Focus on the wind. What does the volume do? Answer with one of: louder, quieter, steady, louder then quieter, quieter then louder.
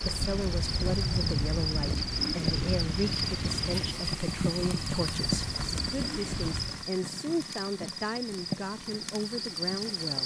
quieter.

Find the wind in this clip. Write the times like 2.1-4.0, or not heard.
0.0-6.8.